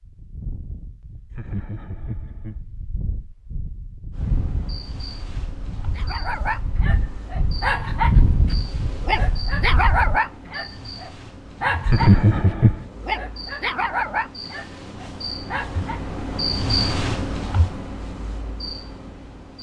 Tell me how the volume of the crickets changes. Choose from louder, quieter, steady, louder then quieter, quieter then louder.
louder.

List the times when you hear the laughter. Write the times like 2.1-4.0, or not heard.
1.3-2.5, 11.8-12.8.